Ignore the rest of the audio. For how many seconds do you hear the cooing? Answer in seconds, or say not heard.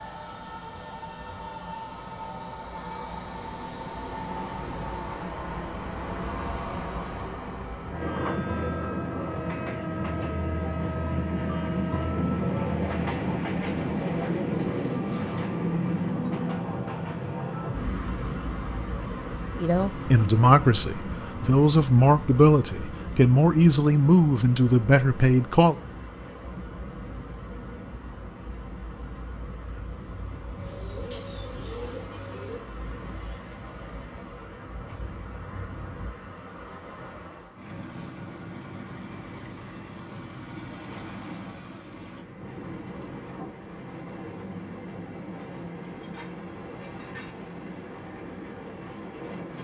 4 s.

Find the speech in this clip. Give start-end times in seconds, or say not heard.
19.6-25.8.